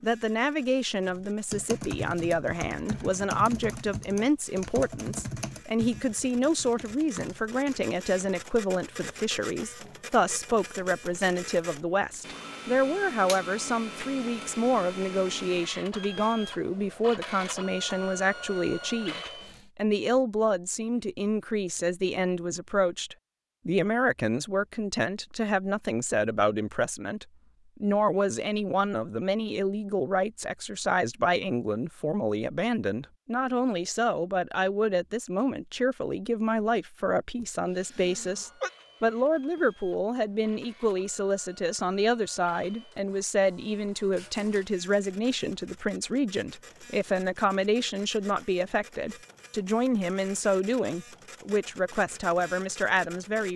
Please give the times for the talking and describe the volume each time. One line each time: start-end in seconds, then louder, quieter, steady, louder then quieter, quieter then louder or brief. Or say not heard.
0.0-53.5 steady.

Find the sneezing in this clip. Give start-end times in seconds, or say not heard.
37.4-38.7.